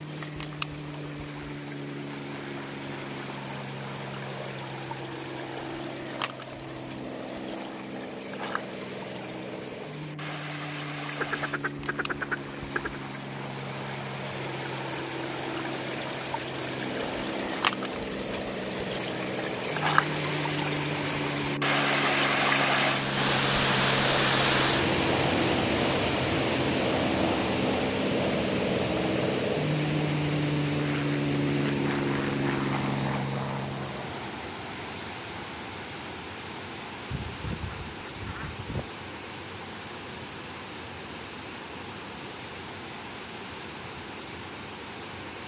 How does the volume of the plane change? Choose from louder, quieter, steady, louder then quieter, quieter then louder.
louder.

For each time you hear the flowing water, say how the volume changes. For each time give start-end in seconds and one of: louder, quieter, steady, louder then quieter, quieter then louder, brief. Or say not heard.
0.0-45.4 louder then quieter.